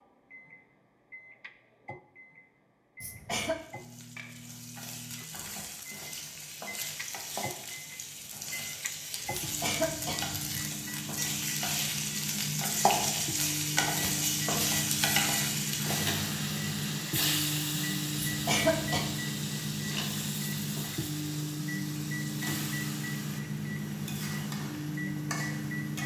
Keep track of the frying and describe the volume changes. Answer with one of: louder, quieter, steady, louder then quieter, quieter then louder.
louder then quieter.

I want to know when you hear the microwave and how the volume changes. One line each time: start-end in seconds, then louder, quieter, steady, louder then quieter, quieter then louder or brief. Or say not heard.
0.0-26.0 louder.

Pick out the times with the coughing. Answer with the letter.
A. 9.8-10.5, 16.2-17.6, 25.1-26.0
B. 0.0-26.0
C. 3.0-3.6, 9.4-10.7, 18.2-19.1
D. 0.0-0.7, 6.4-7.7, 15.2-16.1
C.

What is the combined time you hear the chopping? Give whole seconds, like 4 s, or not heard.
not heard.